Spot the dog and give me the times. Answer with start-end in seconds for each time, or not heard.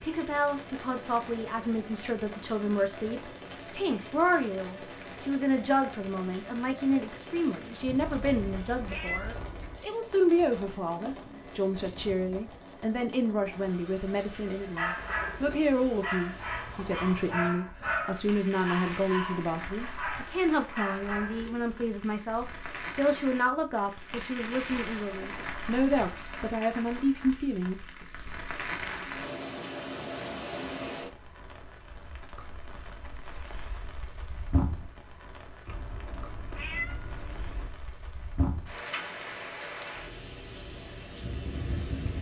14.8-21.9.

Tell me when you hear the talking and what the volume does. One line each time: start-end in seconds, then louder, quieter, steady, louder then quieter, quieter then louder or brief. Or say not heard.
0.0-27.8 steady.